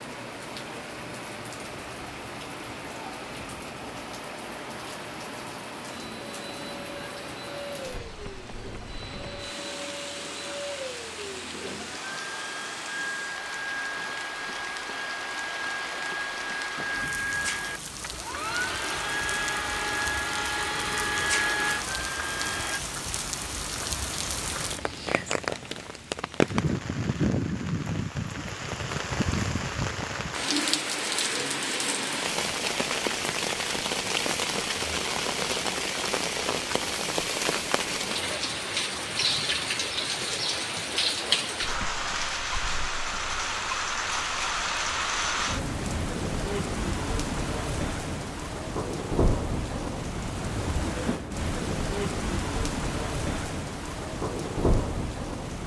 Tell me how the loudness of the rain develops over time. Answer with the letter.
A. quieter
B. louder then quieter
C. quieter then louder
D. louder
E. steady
D.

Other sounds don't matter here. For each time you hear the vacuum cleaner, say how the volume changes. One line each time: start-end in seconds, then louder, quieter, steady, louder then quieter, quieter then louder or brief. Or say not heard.
0.0-22.8 louder.